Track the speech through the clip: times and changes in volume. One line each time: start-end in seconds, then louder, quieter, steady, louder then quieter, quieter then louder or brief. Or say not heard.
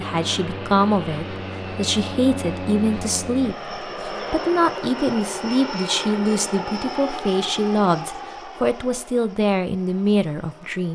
0.0-10.9 steady.